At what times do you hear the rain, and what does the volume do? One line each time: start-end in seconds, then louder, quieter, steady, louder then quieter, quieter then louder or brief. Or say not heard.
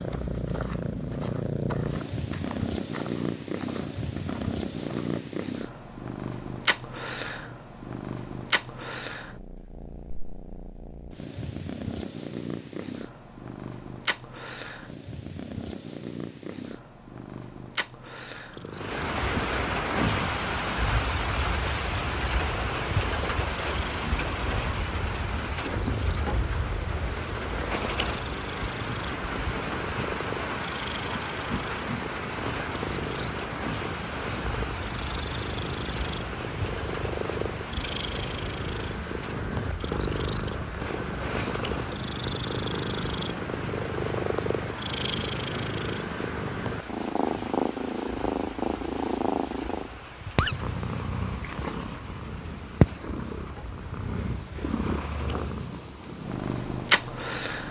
18.7-57.6 quieter.